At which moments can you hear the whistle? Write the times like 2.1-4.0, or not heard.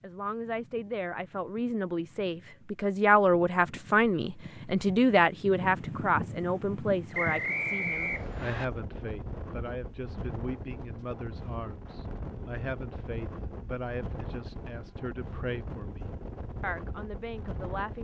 7.1-8.7.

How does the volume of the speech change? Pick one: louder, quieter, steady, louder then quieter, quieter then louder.
quieter.